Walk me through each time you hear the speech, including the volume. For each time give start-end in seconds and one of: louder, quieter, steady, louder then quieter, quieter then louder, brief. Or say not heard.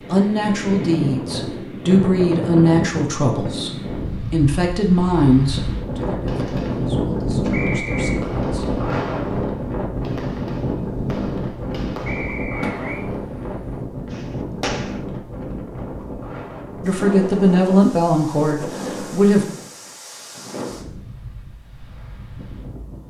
0.1-8.8 quieter
16.8-19.4 brief.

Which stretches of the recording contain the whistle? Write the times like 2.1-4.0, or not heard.
7.5-8.2, 12.1-13.1.